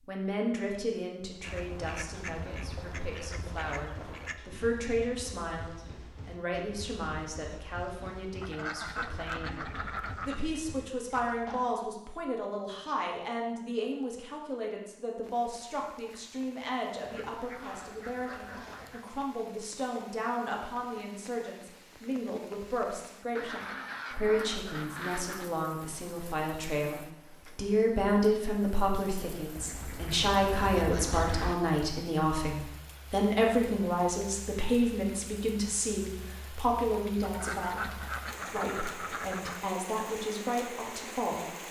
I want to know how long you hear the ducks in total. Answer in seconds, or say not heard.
14 s.